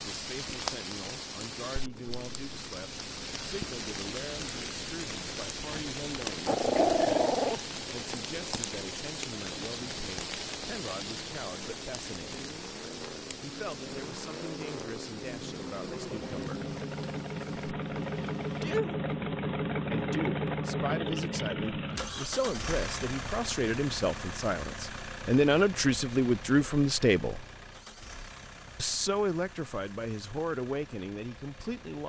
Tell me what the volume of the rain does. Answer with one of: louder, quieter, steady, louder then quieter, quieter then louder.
quieter.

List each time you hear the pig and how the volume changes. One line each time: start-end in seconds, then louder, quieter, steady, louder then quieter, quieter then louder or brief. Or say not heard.
not heard.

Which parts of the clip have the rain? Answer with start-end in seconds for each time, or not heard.
0.0-18.7.